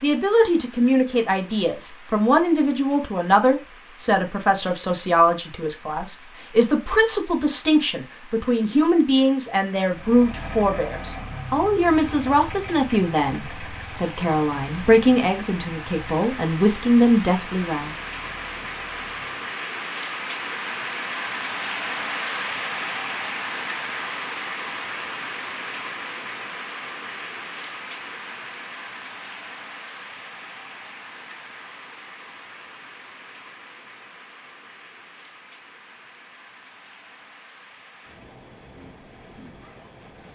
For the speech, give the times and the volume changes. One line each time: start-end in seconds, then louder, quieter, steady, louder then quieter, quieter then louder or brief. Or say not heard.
0.0-17.9 steady.